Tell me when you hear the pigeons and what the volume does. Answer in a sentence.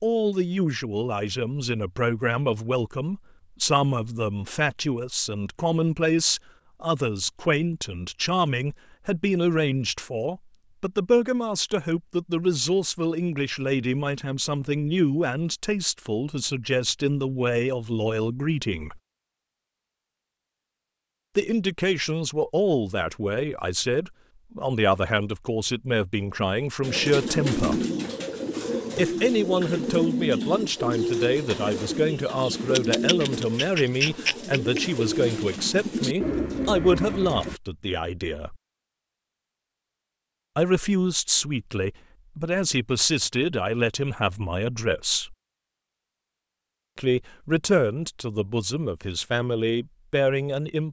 You can hear the pigeons from 26.8 to 37.6 s, at a steady volume.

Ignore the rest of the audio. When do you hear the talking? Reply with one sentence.
You can hear the talking from 0.0 to 19.0 s, from 21.4 to 27.8 s, from 28.9 to 38.5 s, from 40.5 to 45.4 s and from 47.0 to 50.8 s.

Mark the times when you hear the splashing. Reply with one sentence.
You can't hear the splashing here.